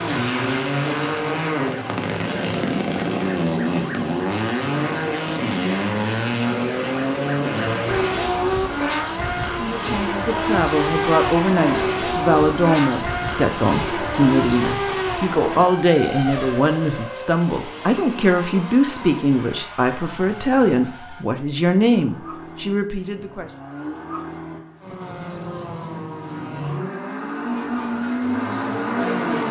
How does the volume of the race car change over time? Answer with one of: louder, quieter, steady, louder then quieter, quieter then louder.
quieter then louder.